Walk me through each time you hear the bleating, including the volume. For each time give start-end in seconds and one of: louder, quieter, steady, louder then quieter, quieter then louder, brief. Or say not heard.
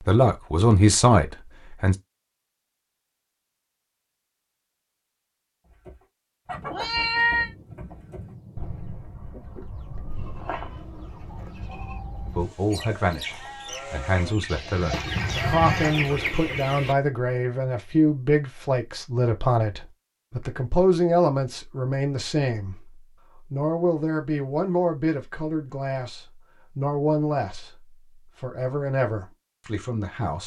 10.1-15.9 quieter then louder.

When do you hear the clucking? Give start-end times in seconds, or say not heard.
5.7-16.9.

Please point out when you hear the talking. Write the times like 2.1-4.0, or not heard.
0.1-1.9, 12.2-30.4.